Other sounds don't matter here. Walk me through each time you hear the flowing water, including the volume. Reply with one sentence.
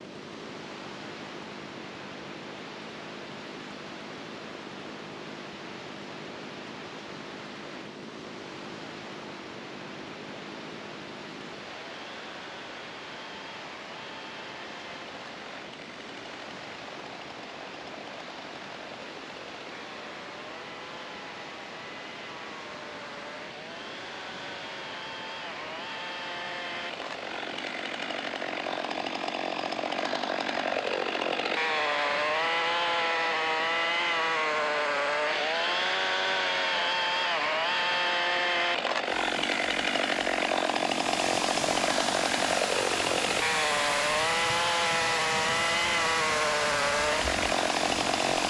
The flowing water can be heard from 0.0 to 48.4 s, getting louder.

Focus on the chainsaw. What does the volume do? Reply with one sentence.
The loudness of the chainsaw goes up.